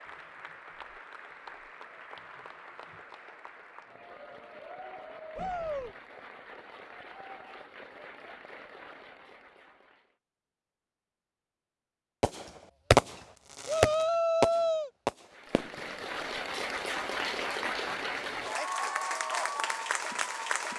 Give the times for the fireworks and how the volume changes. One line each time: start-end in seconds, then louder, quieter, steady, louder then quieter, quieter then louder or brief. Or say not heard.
12.2-16.2 quieter.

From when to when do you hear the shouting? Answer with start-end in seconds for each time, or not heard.
5.3-6.0, 13.7-14.9.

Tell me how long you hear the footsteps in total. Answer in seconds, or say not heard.
not heard.